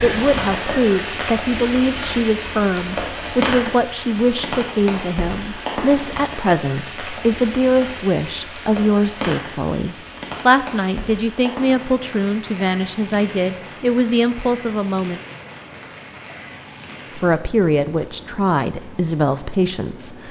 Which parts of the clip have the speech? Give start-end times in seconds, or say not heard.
0.0-15.2, 17.1-20.2.